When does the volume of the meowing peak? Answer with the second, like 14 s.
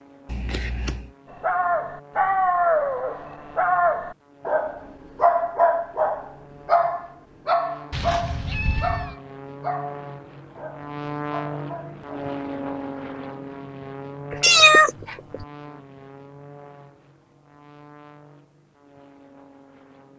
15 s.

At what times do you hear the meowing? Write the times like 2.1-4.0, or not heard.
0.2-1.1, 7.9-9.2, 14.3-15.4.